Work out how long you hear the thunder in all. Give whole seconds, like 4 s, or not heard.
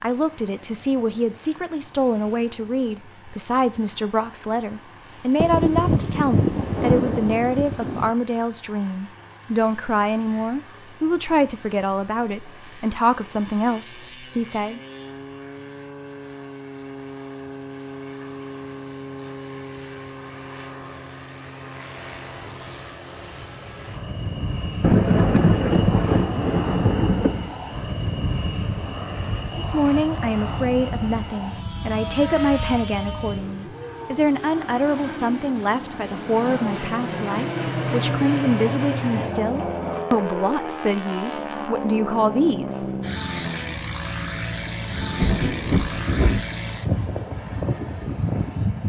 7 s.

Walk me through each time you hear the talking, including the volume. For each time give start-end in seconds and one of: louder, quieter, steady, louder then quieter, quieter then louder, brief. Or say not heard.
0.0-14.8 steady
29.6-42.9 steady.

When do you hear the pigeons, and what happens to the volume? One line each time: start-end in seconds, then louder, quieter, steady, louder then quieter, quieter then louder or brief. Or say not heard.
not heard.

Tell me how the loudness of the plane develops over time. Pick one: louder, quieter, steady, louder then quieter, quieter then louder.
louder.